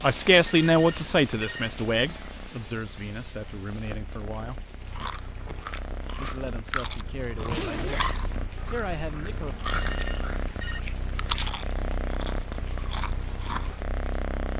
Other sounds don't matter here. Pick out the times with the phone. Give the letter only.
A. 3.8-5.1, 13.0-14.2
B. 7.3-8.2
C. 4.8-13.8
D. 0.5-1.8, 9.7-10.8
D.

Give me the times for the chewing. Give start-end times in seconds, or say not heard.
4.8-13.8.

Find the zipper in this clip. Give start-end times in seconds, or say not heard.
7.3-8.2.